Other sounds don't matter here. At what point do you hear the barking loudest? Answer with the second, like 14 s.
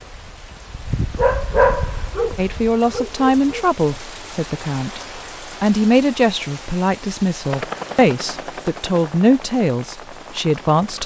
2 s.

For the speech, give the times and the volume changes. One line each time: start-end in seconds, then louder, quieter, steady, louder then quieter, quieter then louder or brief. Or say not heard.
2.4-11.0 steady.